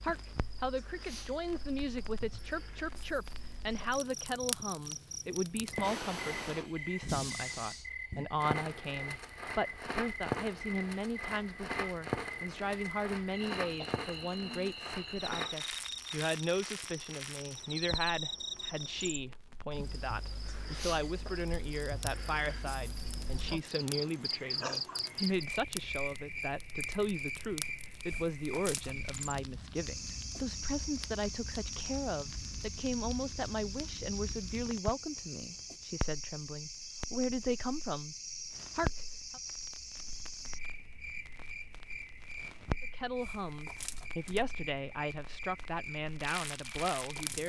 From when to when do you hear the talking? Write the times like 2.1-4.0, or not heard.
0.0-38.1, 38.8-39.4, 42.8-47.4.